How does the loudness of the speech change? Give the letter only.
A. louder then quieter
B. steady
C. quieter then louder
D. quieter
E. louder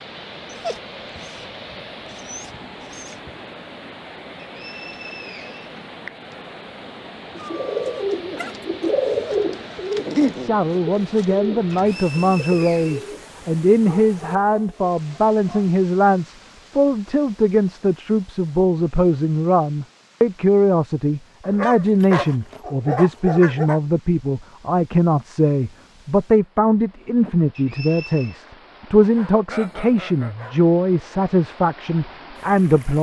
B.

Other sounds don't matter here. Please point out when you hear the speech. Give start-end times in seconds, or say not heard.
10.3-32.9.